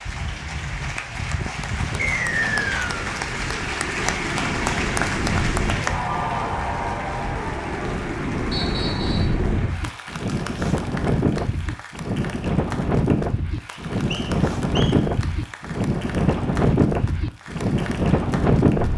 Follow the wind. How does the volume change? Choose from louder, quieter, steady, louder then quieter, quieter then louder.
louder.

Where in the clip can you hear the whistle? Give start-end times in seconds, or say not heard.
2.0-2.9, 8.5-9.3, 13.7-14.9.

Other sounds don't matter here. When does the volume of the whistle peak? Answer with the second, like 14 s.
2 s.